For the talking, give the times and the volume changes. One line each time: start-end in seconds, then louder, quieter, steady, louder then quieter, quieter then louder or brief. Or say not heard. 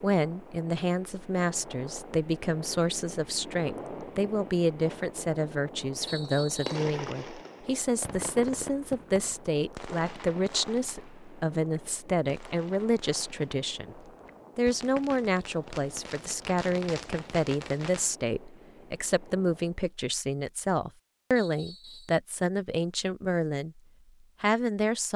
0.0-23.8 steady
24.4-25.1 brief.